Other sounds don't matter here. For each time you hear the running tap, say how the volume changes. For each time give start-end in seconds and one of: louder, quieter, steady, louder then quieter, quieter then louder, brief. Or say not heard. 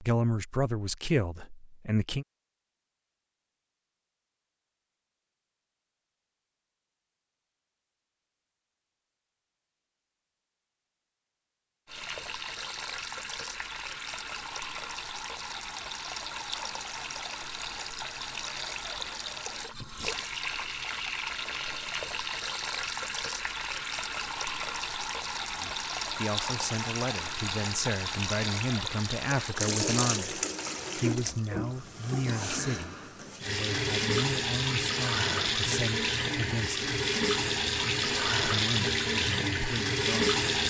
11.8-40.6 louder.